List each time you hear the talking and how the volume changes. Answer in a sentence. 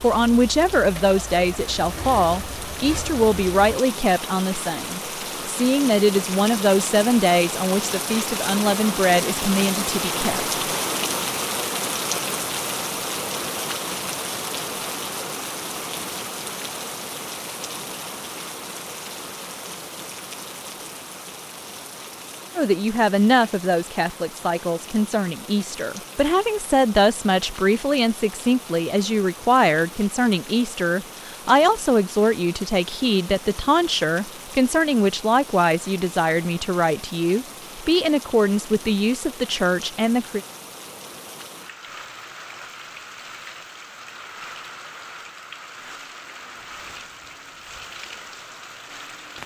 The talking can be heard from 0.0 to 10.6 s, at a steady volume; and from 22.6 to 40.4 s, at a steady volume.